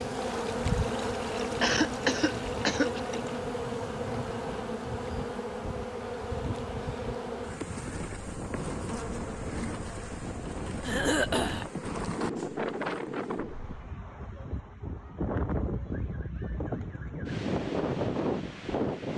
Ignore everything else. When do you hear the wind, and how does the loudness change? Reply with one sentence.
The wind can be heard from 0.0 to 19.1 s, getting louder.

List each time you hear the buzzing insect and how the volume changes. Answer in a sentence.
The buzzing insect can be heard from 0.0 to 13.9 s, getting quieter.